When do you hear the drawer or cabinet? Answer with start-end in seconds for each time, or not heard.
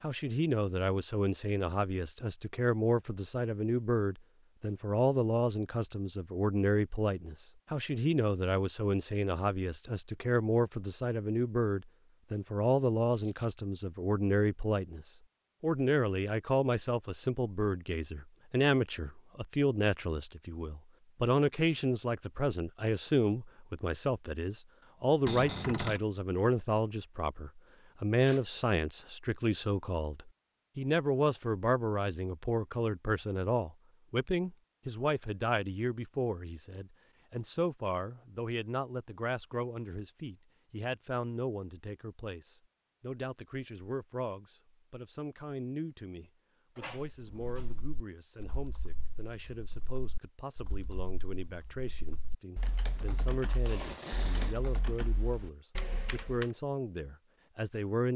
25.2-26.0, 46.8-47.8.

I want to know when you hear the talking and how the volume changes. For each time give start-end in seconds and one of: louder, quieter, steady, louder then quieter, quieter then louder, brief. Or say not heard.
0.0-58.1 quieter.